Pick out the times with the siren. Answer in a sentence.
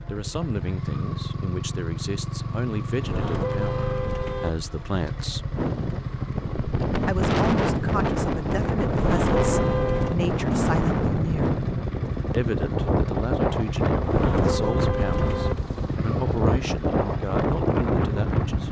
You can't hear the siren here.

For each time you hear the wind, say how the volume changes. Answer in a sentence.
You can hear the wind from 5.5 to 18.6 s, at a steady volume.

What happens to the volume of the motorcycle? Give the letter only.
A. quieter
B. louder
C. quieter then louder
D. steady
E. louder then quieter
D.